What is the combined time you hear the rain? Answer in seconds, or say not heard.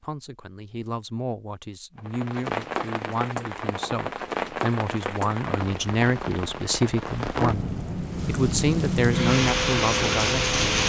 9 s.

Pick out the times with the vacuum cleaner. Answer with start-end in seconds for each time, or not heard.
9.1-10.8.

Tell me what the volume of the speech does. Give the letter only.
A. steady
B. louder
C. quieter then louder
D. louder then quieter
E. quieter
B.